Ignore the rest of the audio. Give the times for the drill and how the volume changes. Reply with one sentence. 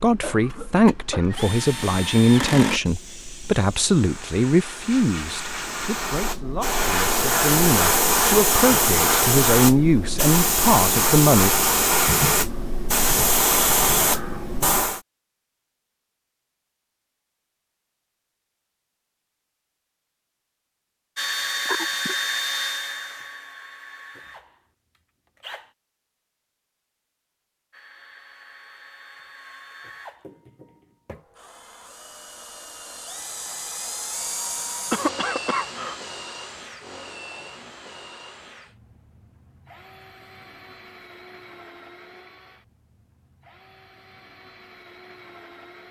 The drill can be heard briefly from 0.0 to 2.8 s; from 21.1 to 25.8 s, getting quieter; and from 27.7 to 45.8 s, getting louder then quieter.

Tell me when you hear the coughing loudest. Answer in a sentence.
The volume of the coughing peaks at 35 seconds.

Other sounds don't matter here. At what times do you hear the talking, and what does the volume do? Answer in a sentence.
The talking can be heard from 0.0 to 11.5 s, getting quieter then louder.